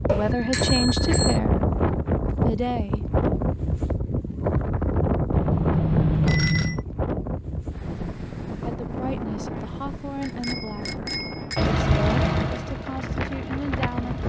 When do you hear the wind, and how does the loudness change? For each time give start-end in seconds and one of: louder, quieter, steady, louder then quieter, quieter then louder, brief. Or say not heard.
0.0-14.2 quieter.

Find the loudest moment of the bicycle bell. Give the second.
6 s.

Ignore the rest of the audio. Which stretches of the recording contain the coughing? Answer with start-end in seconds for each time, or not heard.
not heard.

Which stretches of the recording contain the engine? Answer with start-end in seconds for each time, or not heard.
11.6-14.2.